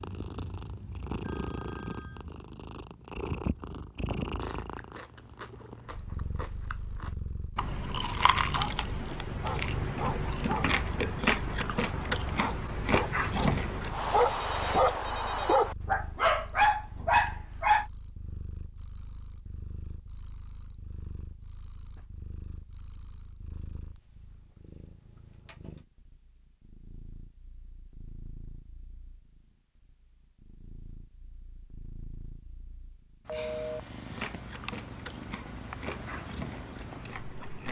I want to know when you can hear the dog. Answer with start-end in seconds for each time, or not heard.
8.4-17.9.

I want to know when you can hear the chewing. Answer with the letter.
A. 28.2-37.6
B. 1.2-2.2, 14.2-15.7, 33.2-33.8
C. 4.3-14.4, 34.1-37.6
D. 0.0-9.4
C.